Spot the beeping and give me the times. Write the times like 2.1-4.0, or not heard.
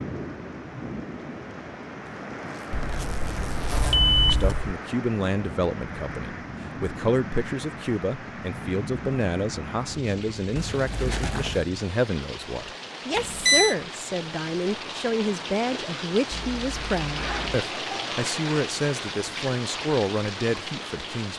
2.7-4.8, 13.2-13.8.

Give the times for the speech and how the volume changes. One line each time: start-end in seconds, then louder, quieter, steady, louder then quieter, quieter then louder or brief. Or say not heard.
4.3-21.3 steady.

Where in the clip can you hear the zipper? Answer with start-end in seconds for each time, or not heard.
2.5-4.0, 10.6-11.7, 16.3-17.6.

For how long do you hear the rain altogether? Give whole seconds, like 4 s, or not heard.
21 s.